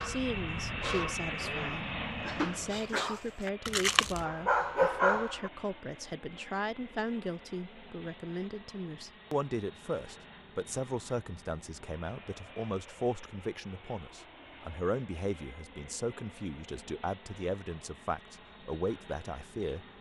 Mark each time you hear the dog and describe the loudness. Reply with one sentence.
You can hear the dog from 0.0 to 5.5 s, getting quieter then louder.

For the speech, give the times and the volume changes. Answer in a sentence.
The speech can be heard from 0.0 to 19.9 s, at a steady volume.